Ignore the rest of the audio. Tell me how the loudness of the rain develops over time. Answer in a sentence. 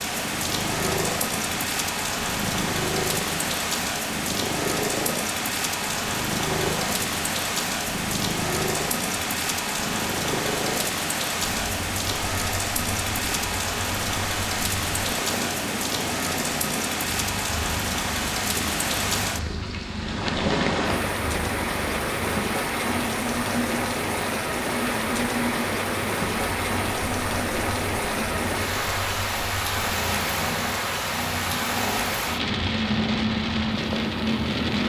The loudness of the rain stays about the same.